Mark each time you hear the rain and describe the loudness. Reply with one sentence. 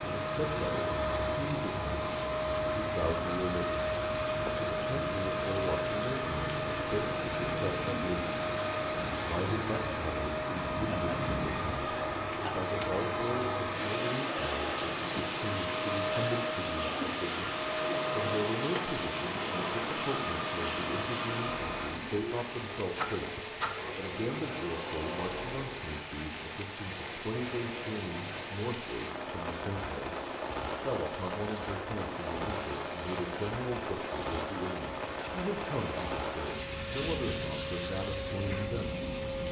The rain can be heard from 0.0 to 39.4 s, at a steady volume.